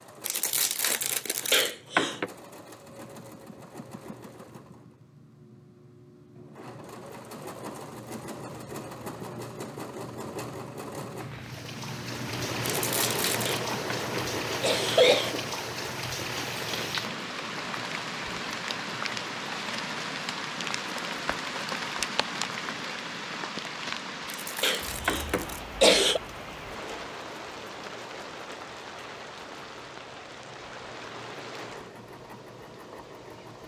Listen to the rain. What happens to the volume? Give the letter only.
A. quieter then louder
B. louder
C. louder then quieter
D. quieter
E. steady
D.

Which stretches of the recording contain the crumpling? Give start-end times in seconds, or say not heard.
0.2-1.8, 12.7-13.6, 24.3-25.6.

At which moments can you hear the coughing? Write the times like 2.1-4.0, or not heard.
1.5-2.3, 13.4-15.4, 24.6-26.2.